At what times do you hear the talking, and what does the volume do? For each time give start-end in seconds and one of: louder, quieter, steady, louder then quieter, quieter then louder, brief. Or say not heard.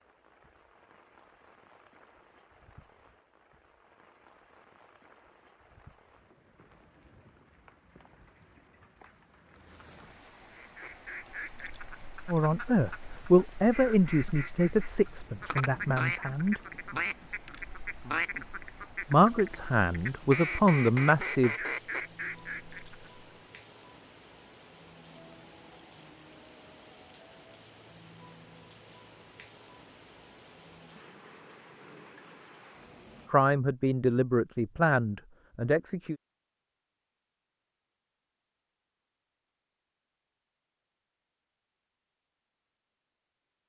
12.2-16.6 quieter
19.1-21.6 brief
33.3-36.1 brief.